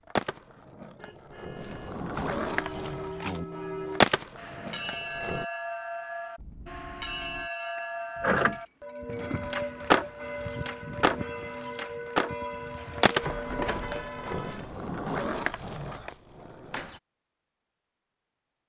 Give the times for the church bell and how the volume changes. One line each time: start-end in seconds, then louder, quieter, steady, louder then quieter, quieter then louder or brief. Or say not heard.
2.4-14.4 steady.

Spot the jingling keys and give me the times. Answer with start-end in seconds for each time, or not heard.
2.1-3.5, 7.8-9.6, 13.2-14.1.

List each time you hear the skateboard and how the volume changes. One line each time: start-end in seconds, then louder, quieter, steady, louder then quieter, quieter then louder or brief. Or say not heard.
0.1-5.5 louder then quieter
9.1-17.0 quieter.